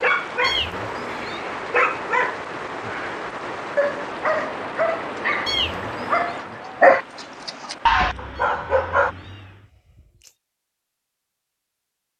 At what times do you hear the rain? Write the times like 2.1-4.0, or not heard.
0.0-9.7.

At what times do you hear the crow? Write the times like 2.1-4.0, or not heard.
not heard.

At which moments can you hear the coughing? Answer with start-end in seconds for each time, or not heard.
not heard.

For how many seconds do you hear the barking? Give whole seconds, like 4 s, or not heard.
9 s.